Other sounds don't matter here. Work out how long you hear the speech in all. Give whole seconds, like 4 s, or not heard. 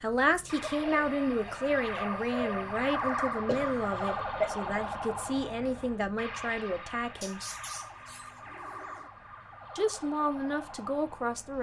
9 s.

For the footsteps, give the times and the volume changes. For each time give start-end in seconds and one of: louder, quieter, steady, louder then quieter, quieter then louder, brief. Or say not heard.
not heard.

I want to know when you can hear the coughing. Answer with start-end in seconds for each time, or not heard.
3.5-4.5.